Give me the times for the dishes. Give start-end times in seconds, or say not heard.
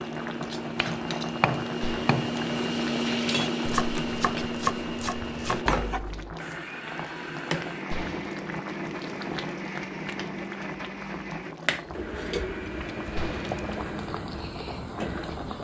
not heard.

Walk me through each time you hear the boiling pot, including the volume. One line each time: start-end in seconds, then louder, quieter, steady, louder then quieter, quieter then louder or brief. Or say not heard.
0.0-15.5 steady.